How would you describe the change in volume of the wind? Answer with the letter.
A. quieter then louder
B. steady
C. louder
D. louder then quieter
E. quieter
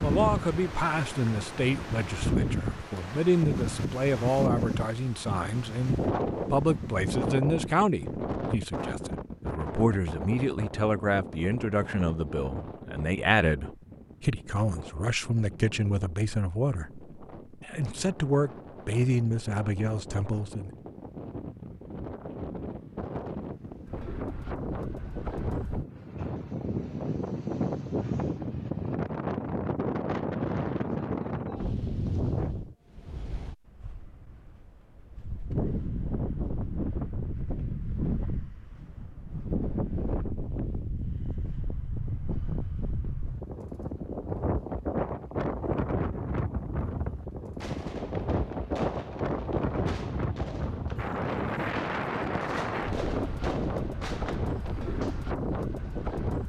A.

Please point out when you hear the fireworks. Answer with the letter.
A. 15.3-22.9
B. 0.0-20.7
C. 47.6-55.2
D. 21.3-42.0
C.